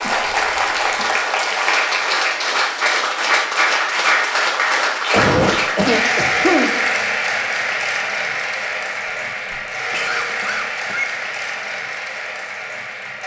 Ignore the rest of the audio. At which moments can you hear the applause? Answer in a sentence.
You can hear the applause from 0.0 to 13.2 s.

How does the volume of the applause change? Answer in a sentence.
The loudness of the applause goes down.